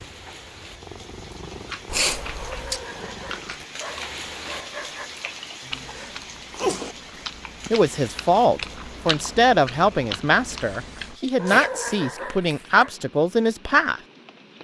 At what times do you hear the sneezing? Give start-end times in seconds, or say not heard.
1.9-2.8, 5.7-7.0, 10.5-11.7.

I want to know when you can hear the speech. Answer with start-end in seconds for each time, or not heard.
7.7-14.0.